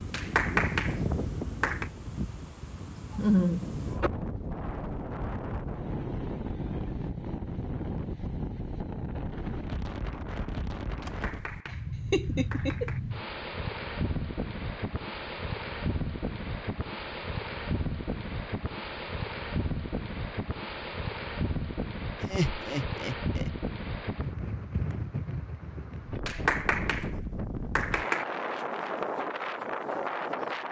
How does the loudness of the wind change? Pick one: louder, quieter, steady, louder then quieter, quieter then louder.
steady.